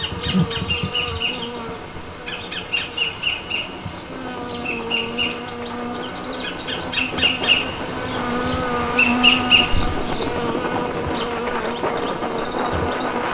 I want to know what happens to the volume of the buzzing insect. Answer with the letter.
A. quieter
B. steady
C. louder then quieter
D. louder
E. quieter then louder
C.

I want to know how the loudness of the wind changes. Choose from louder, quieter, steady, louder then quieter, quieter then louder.
louder.